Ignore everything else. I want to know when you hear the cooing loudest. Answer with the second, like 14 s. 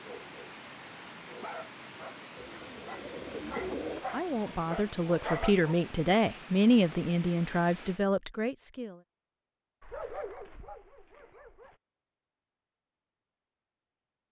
4 s.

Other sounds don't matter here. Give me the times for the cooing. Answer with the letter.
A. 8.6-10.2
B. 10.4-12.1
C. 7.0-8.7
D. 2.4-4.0
D.